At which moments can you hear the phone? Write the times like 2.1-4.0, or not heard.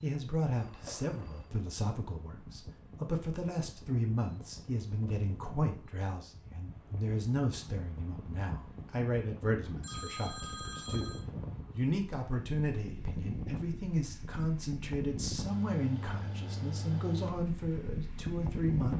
0.6-1.6, 9.8-11.2.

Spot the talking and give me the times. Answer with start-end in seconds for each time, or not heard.
0.0-18.9.